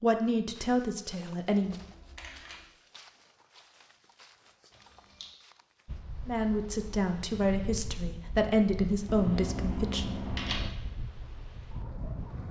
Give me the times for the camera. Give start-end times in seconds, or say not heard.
1.6-2.6, 4.5-5.3, 9.1-10.7.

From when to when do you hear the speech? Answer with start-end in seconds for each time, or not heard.
0.0-1.8, 6.2-10.1.